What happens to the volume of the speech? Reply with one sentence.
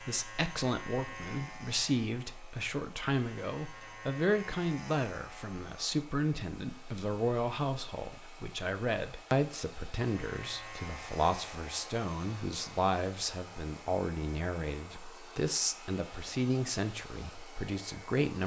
The loudness of the speech stays about the same.